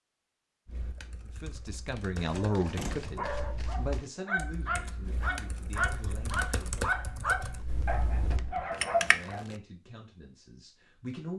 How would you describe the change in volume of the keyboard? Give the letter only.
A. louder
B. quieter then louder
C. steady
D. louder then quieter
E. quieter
A.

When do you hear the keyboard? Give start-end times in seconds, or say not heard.
0.7-9.3.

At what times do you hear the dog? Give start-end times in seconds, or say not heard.
2.3-9.4.